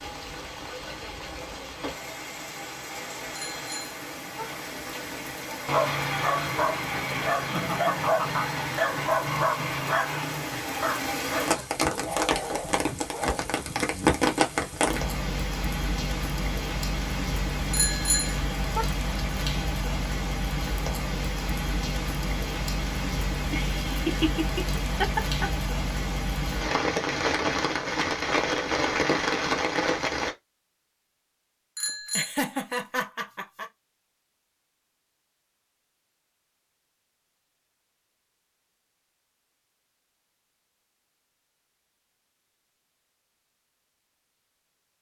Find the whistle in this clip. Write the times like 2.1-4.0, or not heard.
not heard.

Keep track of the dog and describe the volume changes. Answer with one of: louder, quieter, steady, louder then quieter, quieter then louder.
quieter.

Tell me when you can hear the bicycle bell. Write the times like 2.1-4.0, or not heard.
3.4-4.5, 17.7-18.9, 31.8-32.3.